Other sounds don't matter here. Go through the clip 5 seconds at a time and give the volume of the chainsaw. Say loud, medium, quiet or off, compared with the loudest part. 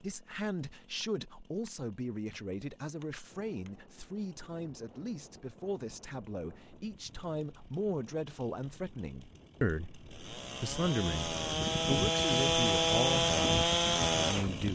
quiet, quiet, loud.